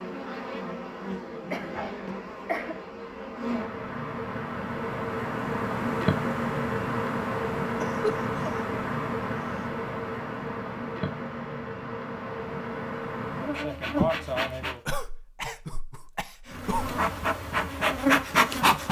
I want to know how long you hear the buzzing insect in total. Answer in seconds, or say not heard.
17 s.